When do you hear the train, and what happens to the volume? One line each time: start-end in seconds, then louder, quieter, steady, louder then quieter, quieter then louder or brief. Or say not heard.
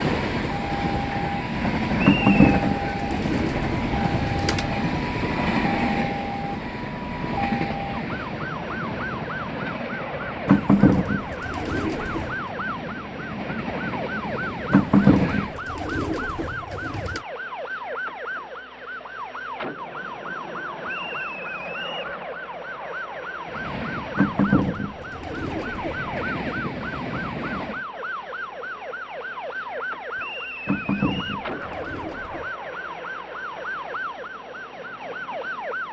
0.0-15.6 quieter
23.4-27.9 quieter then louder.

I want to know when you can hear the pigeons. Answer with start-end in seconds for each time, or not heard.
2.0-4.7, 10.4-12.3, 14.7-17.2, 24.1-26.1, 30.6-32.5.